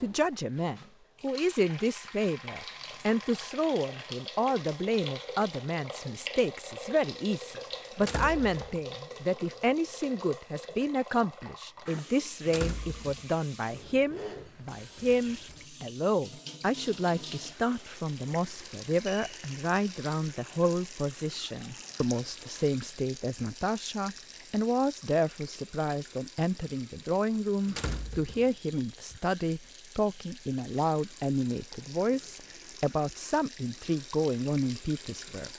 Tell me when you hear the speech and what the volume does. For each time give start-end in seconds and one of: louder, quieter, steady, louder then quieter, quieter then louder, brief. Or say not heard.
0.0-35.5 steady.